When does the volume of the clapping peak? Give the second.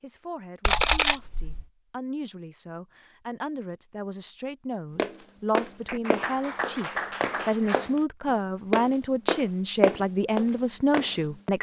7 s.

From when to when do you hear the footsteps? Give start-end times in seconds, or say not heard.
5.0-11.5.